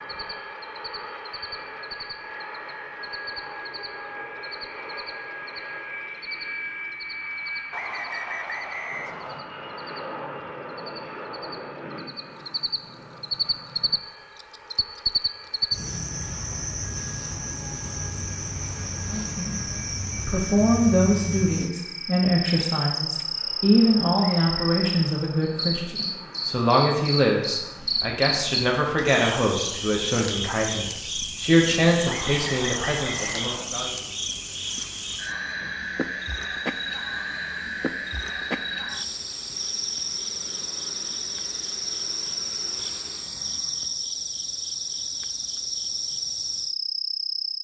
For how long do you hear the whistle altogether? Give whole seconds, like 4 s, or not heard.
4 s.